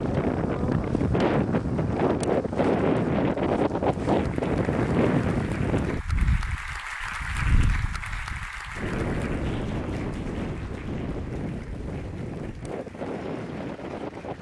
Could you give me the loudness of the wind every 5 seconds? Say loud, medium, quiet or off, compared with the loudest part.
loud, medium, medium.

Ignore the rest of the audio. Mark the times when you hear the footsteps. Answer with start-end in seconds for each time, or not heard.
not heard.